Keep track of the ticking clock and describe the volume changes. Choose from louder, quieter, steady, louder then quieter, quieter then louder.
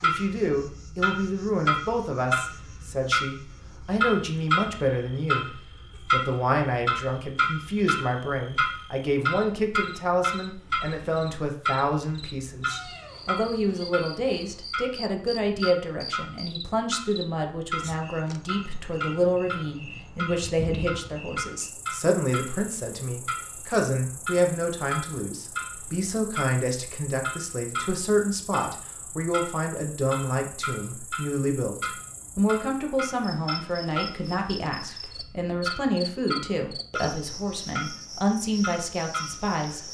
quieter.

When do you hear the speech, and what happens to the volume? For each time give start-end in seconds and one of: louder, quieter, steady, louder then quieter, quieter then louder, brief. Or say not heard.
0.0-39.8 steady.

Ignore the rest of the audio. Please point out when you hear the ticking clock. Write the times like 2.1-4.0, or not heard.
0.0-39.8.